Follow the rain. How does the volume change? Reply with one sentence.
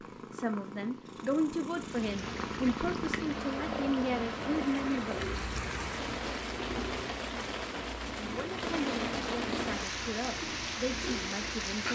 The volume of the rain goes up.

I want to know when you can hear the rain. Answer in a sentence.
You can hear the rain from 1.8 to 11.9 s.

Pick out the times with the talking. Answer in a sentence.
You can hear the talking from 0.3 to 5.2 s and from 8.2 to 11.9 s.